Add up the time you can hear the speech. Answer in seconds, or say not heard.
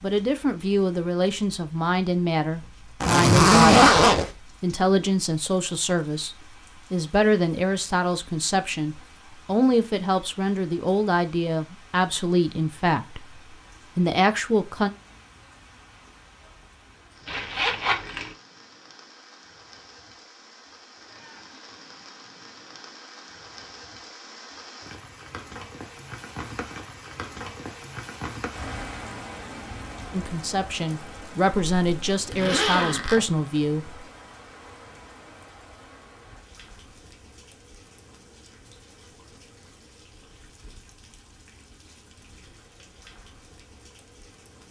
19 s.